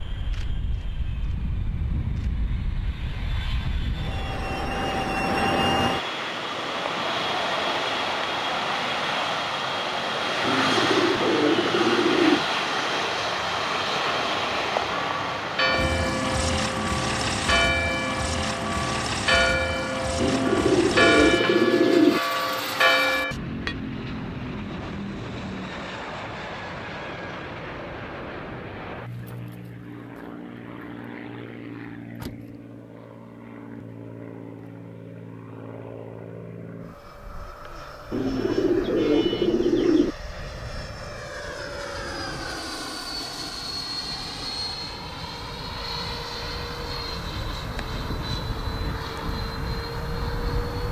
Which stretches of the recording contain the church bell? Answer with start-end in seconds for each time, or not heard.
14.9-23.8.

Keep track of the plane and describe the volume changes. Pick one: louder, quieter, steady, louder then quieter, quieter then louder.
quieter then louder.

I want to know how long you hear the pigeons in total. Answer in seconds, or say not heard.
6 s.